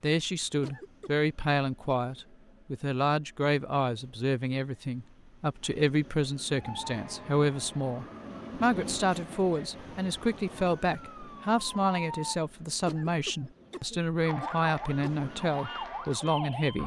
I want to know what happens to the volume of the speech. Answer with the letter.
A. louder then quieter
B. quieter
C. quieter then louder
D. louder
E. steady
E.